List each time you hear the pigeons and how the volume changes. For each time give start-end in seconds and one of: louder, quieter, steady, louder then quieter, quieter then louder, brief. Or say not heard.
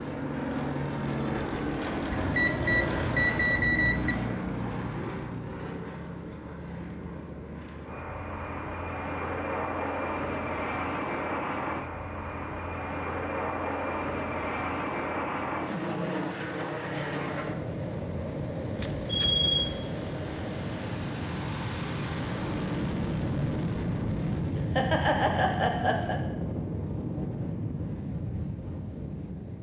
not heard.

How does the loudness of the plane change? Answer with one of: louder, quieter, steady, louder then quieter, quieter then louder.
steady.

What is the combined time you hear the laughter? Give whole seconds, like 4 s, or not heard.
2 s.